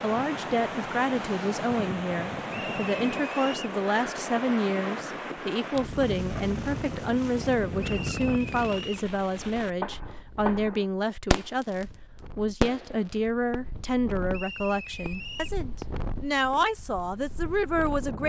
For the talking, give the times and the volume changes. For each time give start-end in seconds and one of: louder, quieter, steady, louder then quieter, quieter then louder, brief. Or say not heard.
0.0-18.2 steady.